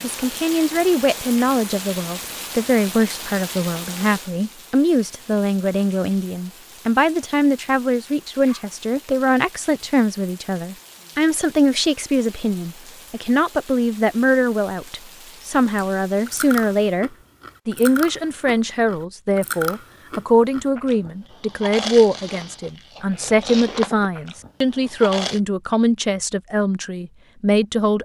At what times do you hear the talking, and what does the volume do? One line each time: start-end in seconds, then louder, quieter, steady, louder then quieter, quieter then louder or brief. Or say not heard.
0.0-28.0 steady.